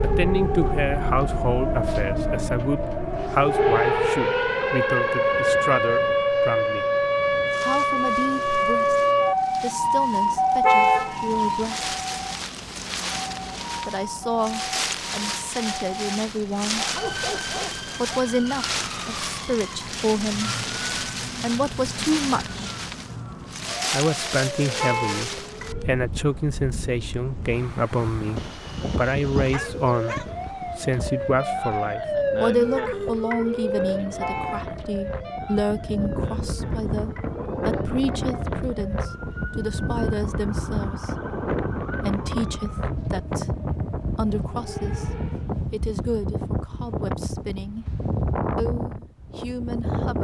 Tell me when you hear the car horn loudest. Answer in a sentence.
The loudest moment of the car horn is at 11 seconds.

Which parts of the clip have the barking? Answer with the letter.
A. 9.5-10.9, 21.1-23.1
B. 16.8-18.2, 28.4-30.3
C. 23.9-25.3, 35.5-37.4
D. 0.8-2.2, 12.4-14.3
B.